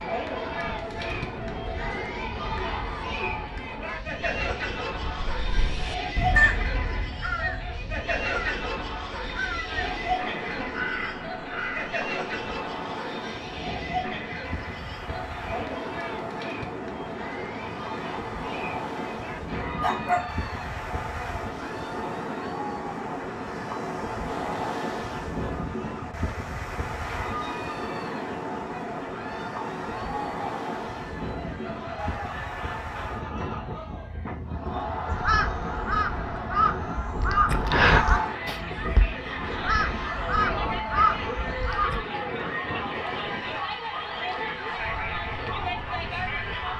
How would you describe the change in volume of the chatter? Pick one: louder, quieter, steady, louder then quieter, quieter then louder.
quieter then louder.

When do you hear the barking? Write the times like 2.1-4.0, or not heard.
19.8-20.3.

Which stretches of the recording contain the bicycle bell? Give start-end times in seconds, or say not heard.
not heard.